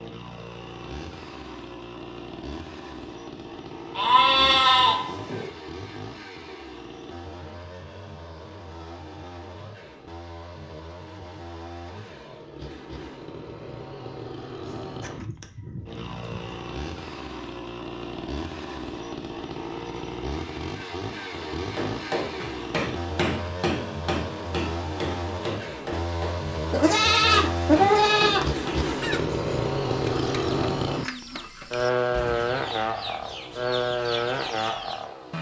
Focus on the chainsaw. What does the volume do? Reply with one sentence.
The volume of the chainsaw goes up.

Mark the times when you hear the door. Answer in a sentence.
The door can't be heard in this clip.